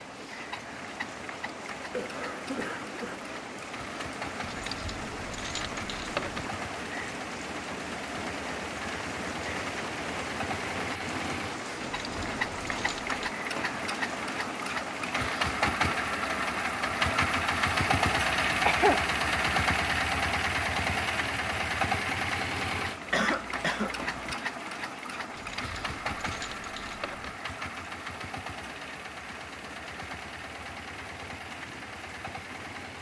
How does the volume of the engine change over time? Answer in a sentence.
The volume of the engine goes up, then down.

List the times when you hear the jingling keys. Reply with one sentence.
The jingling keys can be heard from 4.5 to 6.5 s, from 12.0 to 13.3 s and from 25.4 to 27.4 s.